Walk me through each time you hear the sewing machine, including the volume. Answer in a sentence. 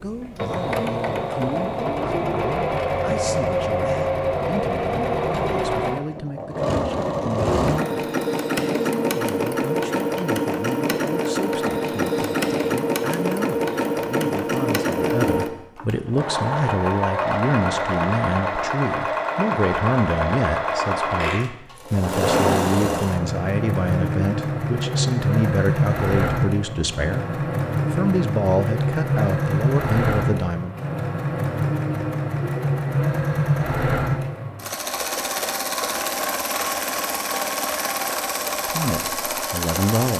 The sewing machine can be heard from 0.0 to 40.1 s, at a steady volume.